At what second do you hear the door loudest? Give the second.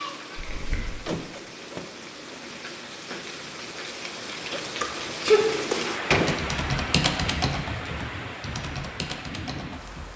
6 s.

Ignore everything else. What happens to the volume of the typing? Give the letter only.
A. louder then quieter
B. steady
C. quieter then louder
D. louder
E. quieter
A.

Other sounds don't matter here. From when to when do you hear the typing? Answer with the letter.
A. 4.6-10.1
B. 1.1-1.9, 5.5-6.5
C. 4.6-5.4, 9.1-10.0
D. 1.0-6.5
A.